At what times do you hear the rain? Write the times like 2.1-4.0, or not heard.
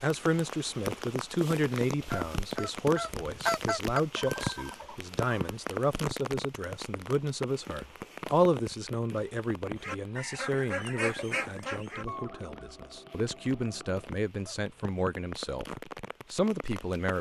0.0-17.1.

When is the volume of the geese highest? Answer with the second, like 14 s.
4 s.